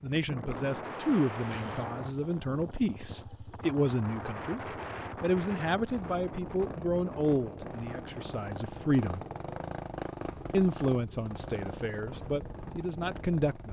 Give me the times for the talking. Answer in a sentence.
You can hear the talking from 0.0 to 4.6 s, from 5.2 to 9.2 s and from 10.5 to 13.6 s.